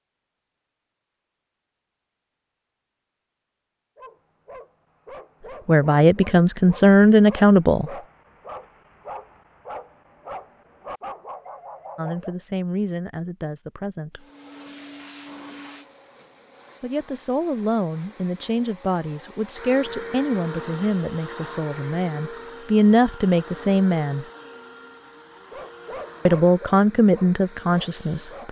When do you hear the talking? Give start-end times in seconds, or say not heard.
5.7-7.9, 11.9-14.2, 16.8-24.2, 26.2-28.4.